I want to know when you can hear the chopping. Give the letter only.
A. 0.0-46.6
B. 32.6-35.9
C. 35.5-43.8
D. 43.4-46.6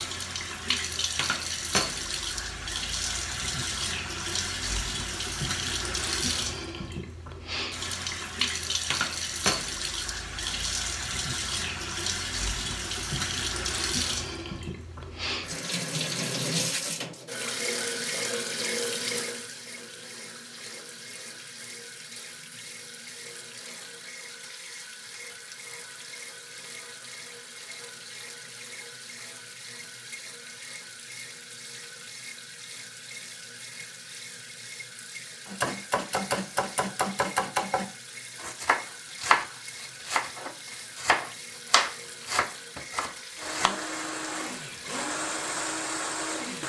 C.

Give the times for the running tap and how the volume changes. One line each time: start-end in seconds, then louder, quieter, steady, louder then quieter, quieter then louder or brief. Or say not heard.
0.0-46.6 quieter.